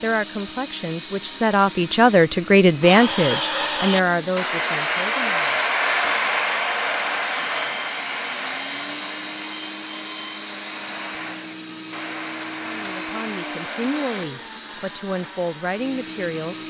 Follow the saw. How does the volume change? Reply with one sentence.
The volume of the saw goes down.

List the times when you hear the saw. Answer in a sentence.
You can hear the saw from 2.8 to 14.3 s.